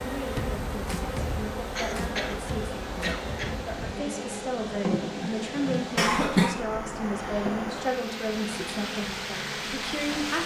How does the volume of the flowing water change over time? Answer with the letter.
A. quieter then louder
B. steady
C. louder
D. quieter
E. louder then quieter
C.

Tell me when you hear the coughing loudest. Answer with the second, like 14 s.
6 s.